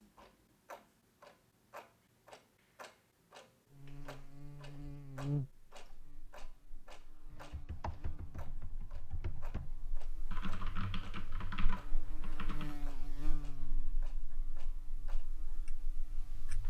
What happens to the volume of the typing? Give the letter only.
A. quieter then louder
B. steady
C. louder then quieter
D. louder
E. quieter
D.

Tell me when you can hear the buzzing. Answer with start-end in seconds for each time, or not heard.
3.7-16.6.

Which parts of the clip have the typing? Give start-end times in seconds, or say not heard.
7.2-12.8.